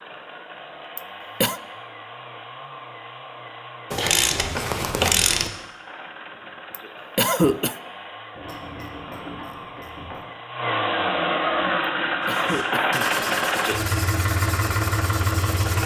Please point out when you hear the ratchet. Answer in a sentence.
The ratchet can be heard from 3.9 to 5.5 s and from 8.3 to 10.2 s.